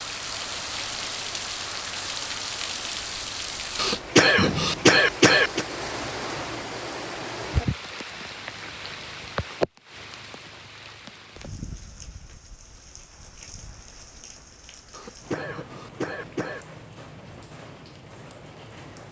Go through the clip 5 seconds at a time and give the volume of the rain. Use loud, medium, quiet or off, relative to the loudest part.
loud, loud, quiet, quiet.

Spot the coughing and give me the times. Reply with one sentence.
The coughing can be heard from 3.8 to 5.7 s and from 14.9 to 16.6 s.